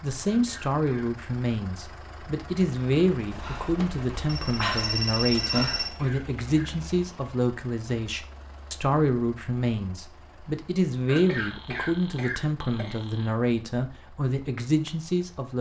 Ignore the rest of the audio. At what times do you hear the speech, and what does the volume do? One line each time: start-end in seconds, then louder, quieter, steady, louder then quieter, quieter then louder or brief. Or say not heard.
0.0-15.5 steady.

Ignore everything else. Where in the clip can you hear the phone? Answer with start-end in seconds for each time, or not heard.
3.3-6.0, 11.2-13.3.